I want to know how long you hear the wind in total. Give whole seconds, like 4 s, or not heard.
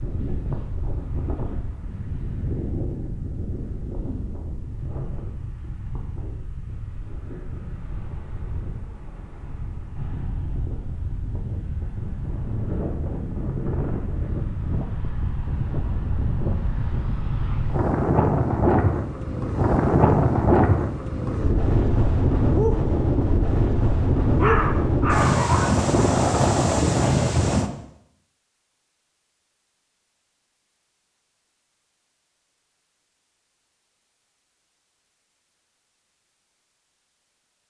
28 s.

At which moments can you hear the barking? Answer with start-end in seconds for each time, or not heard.
24.4-25.8.